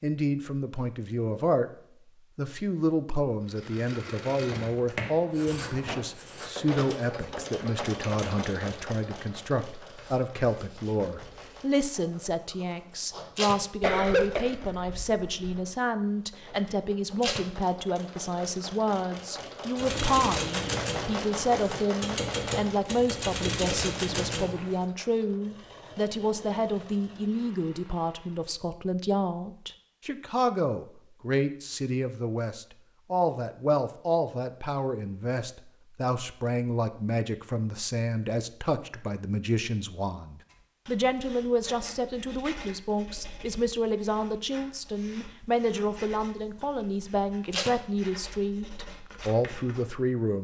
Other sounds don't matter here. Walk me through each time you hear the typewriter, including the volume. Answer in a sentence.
You can hear the typewriter from 19.8 to 24.9 s, getting quieter then louder.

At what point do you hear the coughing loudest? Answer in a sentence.
The loudest moment of the coughing is at 14 seconds.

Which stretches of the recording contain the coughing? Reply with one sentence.
The coughing can be heard from 13.8 to 15.6 s.